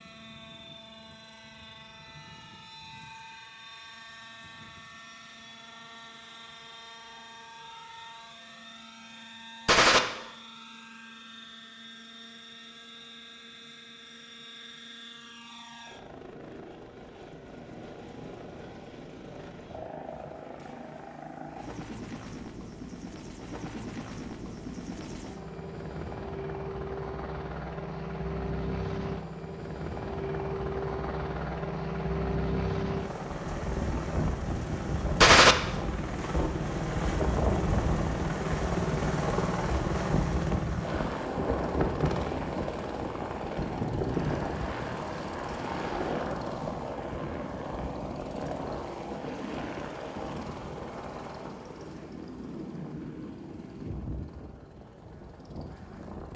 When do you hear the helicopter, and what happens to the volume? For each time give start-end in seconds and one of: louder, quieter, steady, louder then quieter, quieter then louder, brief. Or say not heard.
0.0-56.3 louder then quieter.